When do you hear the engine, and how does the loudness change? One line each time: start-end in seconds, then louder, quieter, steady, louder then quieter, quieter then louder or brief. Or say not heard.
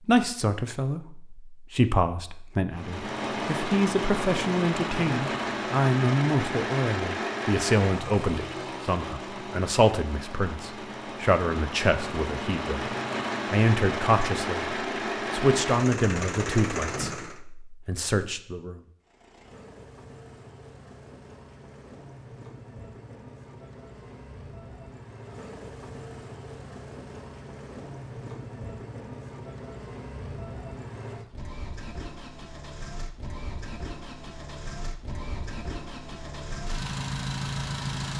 2.7-17.4 quieter then louder
19.0-38.1 louder.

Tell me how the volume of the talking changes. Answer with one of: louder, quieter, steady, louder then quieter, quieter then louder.
steady.